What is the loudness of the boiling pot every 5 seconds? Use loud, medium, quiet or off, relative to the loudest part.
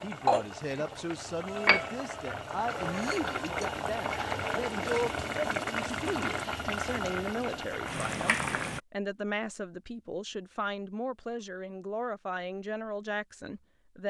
loud, loud, off.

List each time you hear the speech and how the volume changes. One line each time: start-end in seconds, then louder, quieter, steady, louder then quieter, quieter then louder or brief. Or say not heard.
0.0-14.0 steady.